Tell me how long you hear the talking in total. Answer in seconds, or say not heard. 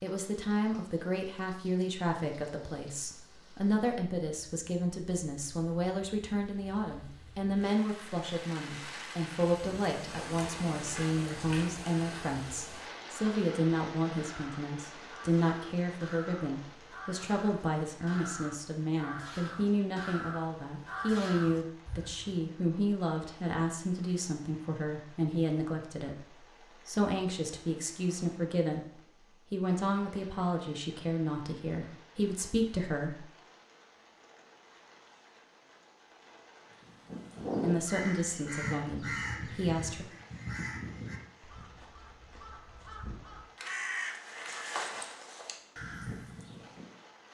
36 s.